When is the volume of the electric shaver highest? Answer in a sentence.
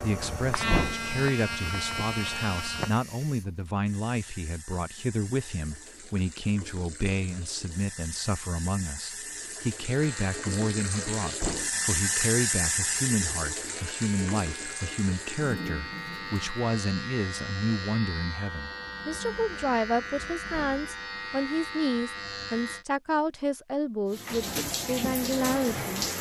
The volume of the electric shaver peaks at 1 second.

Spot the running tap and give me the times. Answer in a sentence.
The running tap can be heard from 0.0 to 16.6 s and from 24.1 to 26.1 s.